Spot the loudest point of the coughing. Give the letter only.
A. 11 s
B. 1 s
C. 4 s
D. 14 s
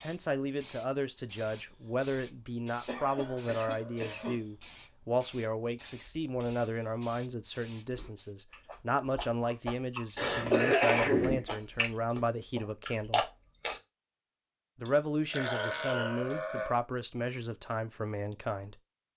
A.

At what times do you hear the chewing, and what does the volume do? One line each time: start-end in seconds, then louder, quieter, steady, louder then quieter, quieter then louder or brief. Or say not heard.
7.9-13.8 louder.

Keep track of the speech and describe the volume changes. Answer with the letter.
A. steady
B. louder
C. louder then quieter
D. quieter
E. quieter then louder
A.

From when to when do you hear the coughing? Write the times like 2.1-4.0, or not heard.
2.9-4.4, 10.2-11.4.